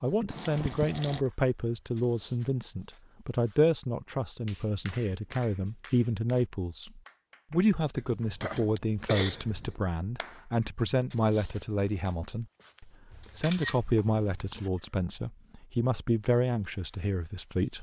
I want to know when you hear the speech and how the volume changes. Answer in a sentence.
You can hear the speech from 0.0 to 17.7 s, at a steady volume.